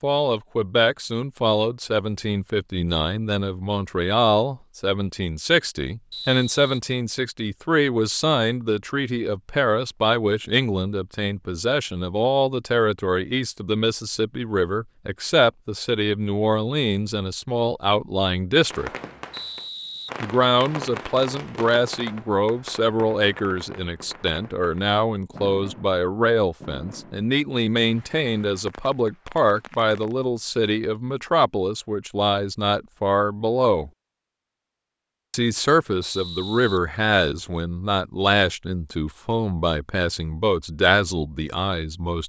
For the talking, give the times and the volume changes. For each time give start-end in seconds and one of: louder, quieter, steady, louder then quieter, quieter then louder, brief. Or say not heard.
0.0-18.9 steady
20.2-33.9 steady
35.3-42.2 steady.